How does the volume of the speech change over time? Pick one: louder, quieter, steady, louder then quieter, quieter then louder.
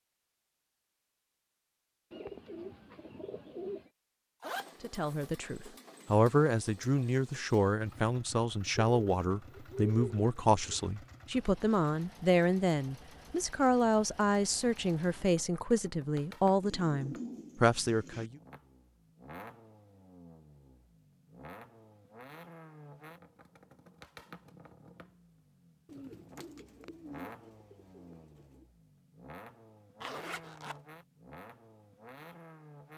steady.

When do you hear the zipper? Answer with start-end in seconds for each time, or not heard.
4.4-5.3, 30.0-30.8.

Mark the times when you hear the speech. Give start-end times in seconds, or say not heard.
4.8-18.4.